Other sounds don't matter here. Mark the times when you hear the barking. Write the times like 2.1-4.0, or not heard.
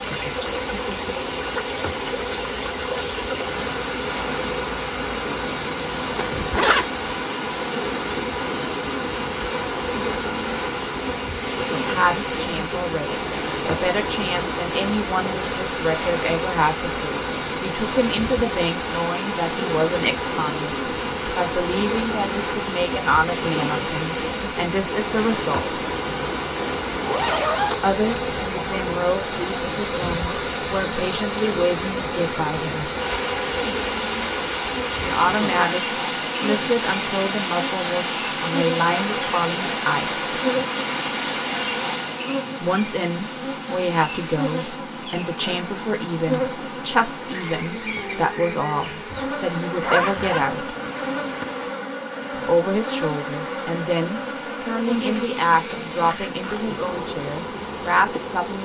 not heard.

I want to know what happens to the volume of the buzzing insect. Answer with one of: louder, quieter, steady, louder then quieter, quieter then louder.
steady.